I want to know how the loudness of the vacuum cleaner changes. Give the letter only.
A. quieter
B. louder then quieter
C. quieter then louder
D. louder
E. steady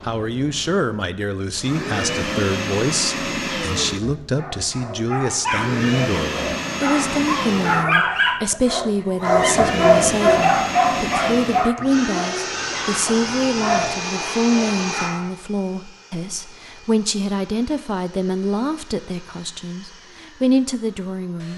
A.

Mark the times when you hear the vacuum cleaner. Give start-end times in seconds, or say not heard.
0.0-21.5.